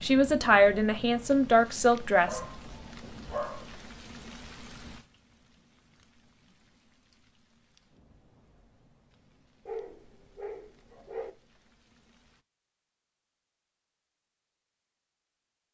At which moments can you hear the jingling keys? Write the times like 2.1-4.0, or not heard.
not heard.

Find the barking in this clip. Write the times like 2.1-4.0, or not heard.
2.2-3.7, 9.7-11.3.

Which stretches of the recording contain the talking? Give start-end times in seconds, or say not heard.
0.0-2.4.